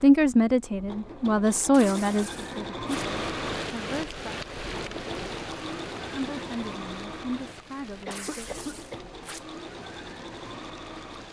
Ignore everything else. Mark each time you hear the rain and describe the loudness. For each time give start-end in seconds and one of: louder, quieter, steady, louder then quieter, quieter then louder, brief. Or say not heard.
2.9-11.2 quieter.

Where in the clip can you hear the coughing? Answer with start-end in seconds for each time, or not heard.
8.1-9.1.